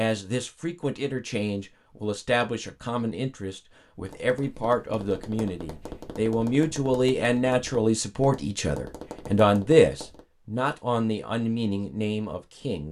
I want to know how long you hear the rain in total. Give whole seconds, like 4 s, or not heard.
not heard.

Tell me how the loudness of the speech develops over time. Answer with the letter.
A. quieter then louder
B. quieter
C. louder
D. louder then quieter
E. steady
D.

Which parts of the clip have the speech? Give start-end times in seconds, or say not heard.
0.0-12.8.